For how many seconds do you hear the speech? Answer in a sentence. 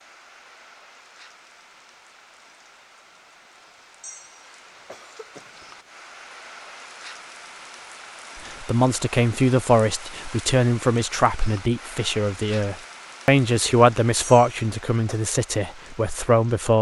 You can hear the speech for 8 seconds altogether.